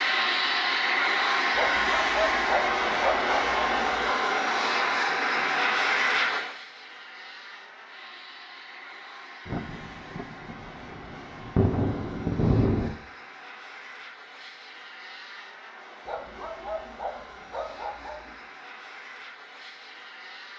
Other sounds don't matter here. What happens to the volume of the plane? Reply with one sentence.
The volume of the plane goes down.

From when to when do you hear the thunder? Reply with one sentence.
You can hear the thunder from 9.4 to 12.9 s.